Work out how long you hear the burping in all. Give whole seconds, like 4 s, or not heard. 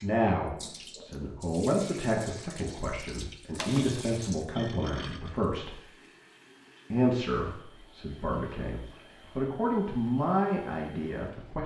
2 s.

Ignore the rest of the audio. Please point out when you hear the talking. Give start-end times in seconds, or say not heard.
0.0-5.8, 6.9-11.6.